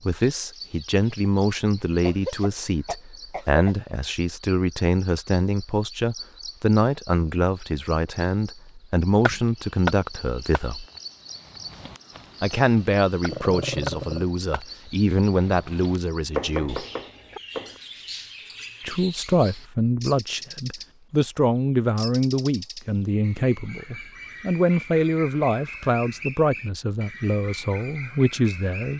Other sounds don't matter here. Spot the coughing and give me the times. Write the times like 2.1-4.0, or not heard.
2.0-3.8.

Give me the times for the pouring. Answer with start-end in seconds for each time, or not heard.
not heard.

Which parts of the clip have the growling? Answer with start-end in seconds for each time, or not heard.
13.2-14.2.